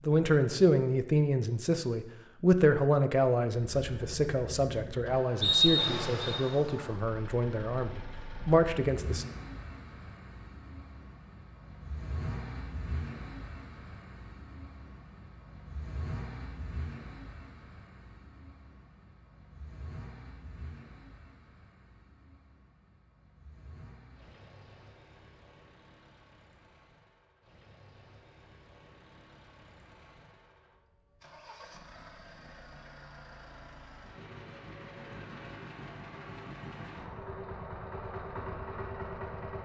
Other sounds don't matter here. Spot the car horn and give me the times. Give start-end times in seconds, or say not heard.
not heard.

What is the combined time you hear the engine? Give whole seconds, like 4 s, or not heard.
36 s.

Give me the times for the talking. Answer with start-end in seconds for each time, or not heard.
0.1-9.2.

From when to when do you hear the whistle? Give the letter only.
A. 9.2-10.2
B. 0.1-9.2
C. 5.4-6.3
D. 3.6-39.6
C.